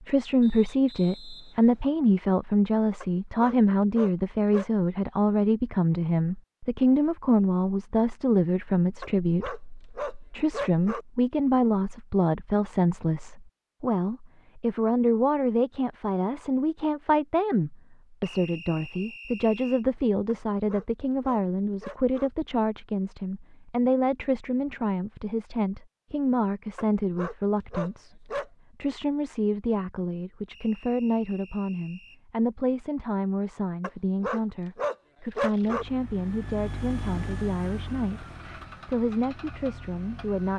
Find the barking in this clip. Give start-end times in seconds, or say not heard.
3.0-4.7, 9.0-11.1, 20.2-22.3, 26.8-28.5, 33.8-35.9.